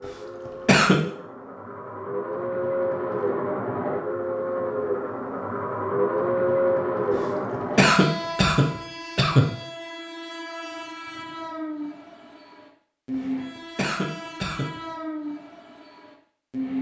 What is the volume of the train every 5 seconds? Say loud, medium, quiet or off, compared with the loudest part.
loud, loud, medium, medium.